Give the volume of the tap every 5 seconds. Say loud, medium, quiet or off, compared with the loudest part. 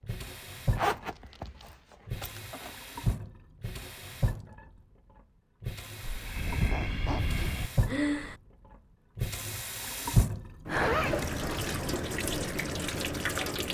medium, medium, loud.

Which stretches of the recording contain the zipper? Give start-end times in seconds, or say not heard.
0.8-2.7, 6.5-7.5, 10.7-11.3.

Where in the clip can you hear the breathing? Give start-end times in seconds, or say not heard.
6.0-8.3.